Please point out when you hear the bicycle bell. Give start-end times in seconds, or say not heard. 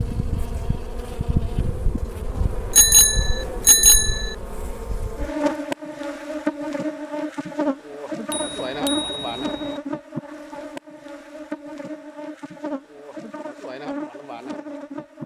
2.7-4.3, 8.3-9.8.